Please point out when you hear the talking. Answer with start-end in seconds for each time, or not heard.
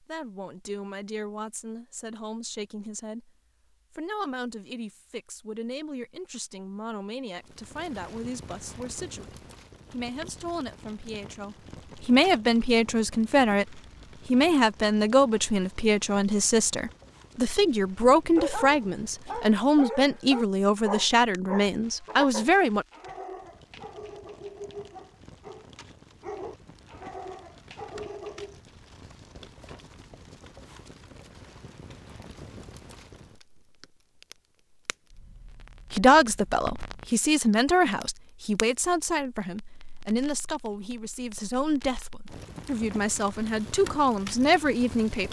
0.0-3.3, 3.9-22.9, 35.9-45.2.